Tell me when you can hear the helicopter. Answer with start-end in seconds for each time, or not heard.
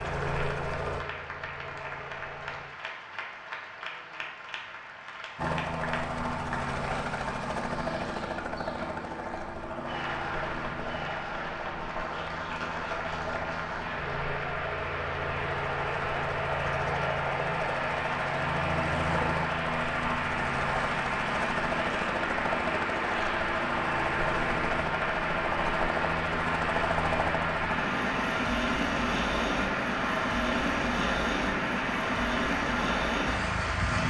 0.0-2.6, 5.3-34.0.